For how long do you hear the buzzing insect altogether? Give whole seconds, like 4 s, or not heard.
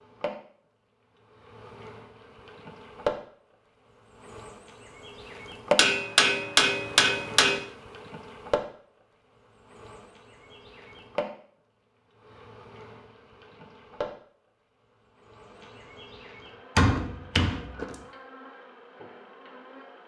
20 s.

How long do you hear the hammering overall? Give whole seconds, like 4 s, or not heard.
3 s.